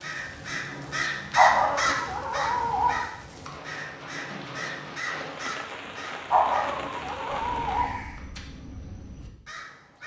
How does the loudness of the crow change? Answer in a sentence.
The volume of the crow goes down.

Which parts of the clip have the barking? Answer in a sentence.
The barking can be heard from 1.4 to 3.0 s and from 6.3 to 7.9 s.